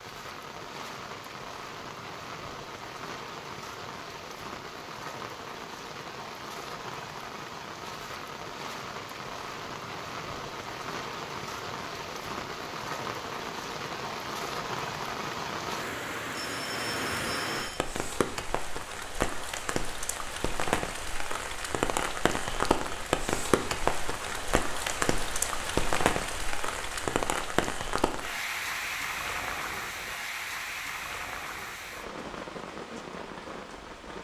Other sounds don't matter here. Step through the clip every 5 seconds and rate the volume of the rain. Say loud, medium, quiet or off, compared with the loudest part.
medium, medium, medium, loud, loud, loud, medium.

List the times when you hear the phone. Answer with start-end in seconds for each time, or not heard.
16.4-17.8.